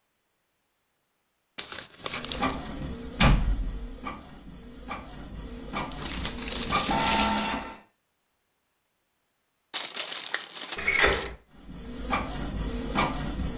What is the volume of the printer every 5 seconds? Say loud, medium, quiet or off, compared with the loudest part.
medium, loud, loud.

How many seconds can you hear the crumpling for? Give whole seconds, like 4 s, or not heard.
4 s.